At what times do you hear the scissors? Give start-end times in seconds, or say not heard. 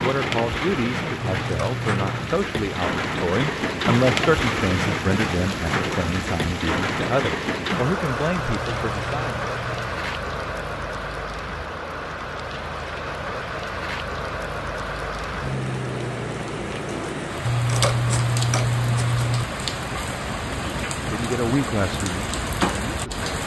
1.2-2.2, 8.6-10.0, 17.4-19.4.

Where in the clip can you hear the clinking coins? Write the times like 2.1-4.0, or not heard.
not heard.